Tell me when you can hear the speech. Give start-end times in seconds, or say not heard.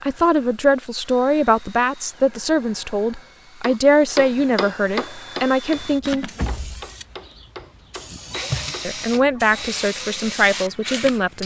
0.0-6.3, 8.8-11.4.